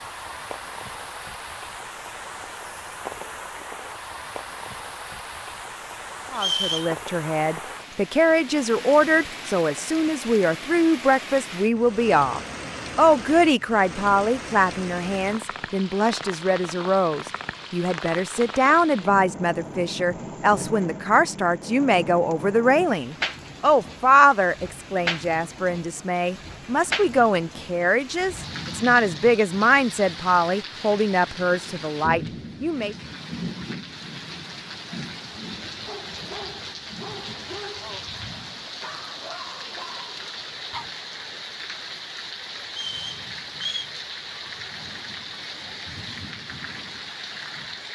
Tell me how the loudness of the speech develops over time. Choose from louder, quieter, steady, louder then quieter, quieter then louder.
steady.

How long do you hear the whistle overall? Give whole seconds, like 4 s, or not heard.
2 s.